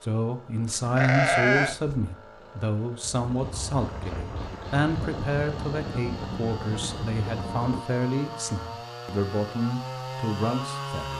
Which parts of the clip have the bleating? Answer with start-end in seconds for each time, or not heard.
0.7-2.1.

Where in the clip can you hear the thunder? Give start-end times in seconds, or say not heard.
3.1-7.8.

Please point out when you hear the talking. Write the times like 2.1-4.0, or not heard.
0.0-11.1.